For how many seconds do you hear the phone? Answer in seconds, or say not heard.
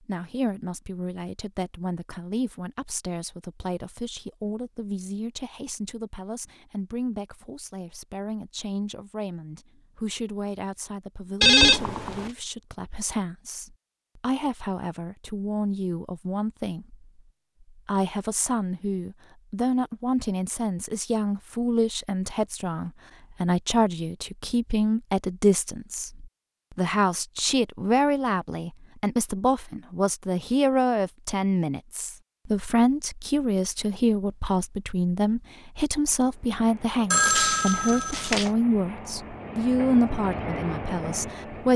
2 s.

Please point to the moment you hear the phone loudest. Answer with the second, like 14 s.
12 s.